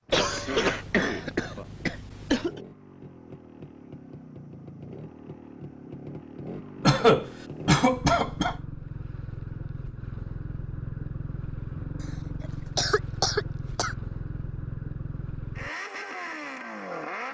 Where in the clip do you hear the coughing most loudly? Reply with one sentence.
The loudest moment of the coughing is at 7 seconds.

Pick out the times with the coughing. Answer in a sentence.
You can hear the coughing from 0.1 to 2.6 s, from 6.8 to 8.6 s and from 12.8 to 13.9 s.